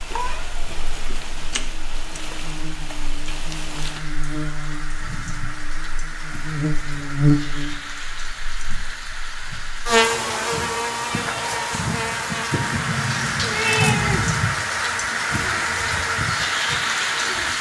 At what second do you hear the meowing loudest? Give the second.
14 s.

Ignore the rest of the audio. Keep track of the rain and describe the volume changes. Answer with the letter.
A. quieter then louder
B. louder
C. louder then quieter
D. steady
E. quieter
B.